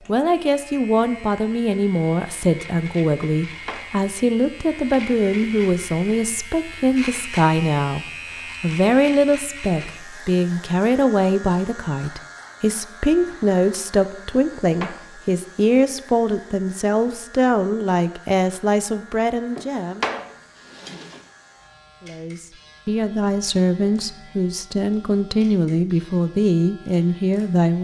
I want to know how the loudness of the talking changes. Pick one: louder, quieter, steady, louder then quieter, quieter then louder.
steady.